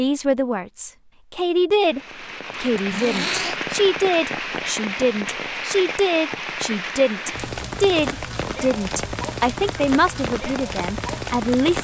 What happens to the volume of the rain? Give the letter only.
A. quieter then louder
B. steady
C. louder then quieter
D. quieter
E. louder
B.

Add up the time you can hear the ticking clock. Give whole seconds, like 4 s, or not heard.
not heard.